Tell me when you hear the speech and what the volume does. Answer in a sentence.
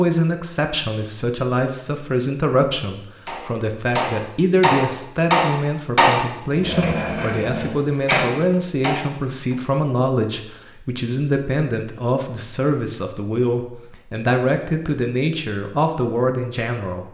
The speech can be heard from 0.0 to 17.0 s, at a steady volume.